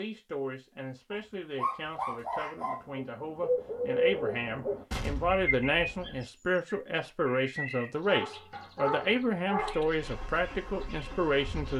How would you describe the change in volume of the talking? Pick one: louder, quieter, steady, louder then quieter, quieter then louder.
louder.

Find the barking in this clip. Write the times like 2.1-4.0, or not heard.
1.1-2.9, 8.1-9.8.